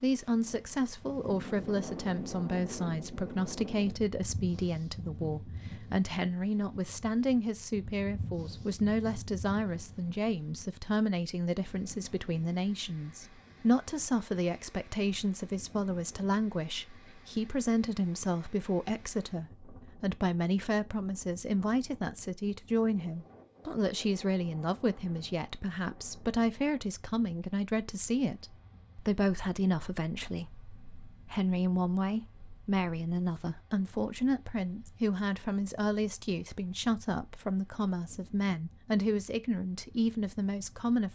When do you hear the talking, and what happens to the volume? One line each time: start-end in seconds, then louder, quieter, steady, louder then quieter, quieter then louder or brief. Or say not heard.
0.0-41.0 steady.